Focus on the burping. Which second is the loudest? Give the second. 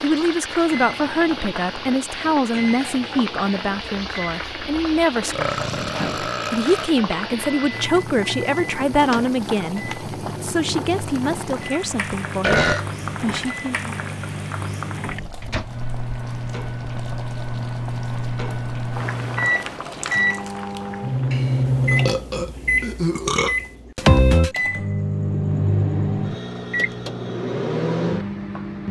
13 s.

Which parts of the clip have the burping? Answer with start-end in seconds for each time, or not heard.
5.3-6.9, 12.4-13.6, 21.3-23.6.